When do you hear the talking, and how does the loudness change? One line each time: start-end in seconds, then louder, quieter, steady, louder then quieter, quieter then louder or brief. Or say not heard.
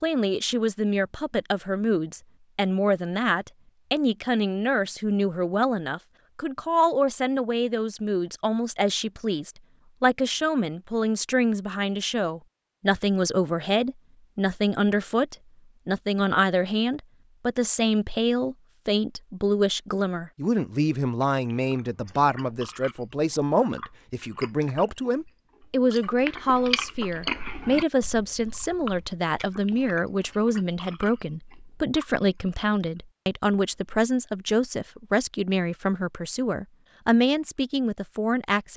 0.0-38.7 steady.